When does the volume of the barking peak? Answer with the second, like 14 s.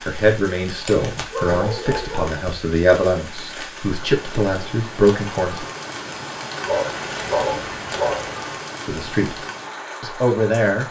7 s.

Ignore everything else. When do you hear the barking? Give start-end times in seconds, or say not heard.
0.8-2.5, 6.7-8.4.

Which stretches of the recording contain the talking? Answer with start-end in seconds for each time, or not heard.
0.0-5.7, 8.8-9.3, 10.0-10.8.